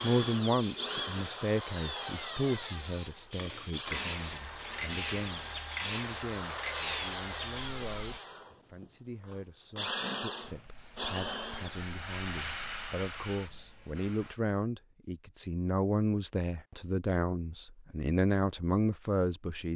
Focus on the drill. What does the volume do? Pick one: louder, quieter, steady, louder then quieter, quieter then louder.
quieter then louder.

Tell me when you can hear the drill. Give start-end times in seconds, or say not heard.
0.0-11.8.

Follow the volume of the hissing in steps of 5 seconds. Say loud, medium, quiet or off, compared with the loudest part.
loud, loud, medium, off.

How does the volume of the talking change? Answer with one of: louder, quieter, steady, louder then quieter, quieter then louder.
quieter then louder.